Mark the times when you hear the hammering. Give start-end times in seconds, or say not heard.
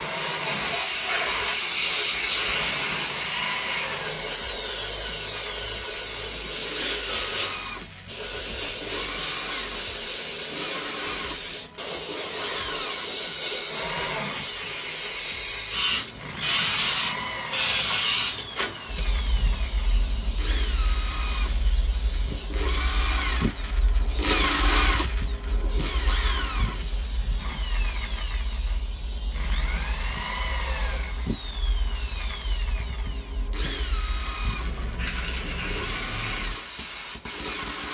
not heard.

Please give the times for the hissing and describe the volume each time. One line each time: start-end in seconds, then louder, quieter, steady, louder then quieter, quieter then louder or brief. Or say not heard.
0.0-37.9 quieter.